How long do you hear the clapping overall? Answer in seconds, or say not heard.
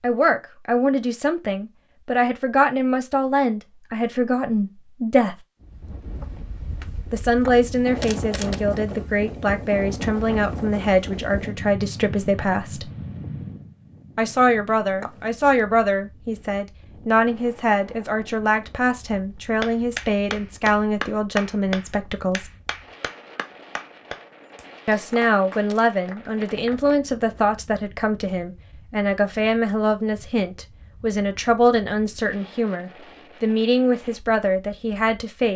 7 s.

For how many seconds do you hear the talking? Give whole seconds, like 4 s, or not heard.
30 s.